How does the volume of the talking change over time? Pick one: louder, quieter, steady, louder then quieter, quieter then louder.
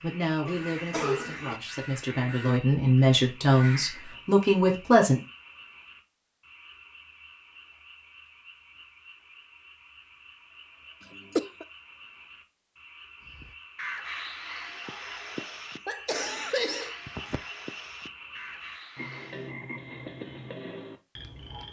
louder.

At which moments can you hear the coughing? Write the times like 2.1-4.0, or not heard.
0.5-1.6, 11.0-11.7, 15.3-17.4.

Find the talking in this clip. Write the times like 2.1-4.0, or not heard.
0.0-5.2.